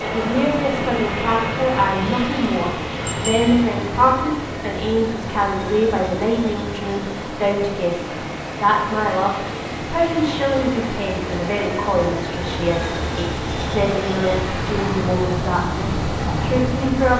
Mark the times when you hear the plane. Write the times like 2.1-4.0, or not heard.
0.0-17.1.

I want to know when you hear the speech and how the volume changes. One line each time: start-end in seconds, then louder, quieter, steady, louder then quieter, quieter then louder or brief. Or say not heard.
0.1-17.1 steady.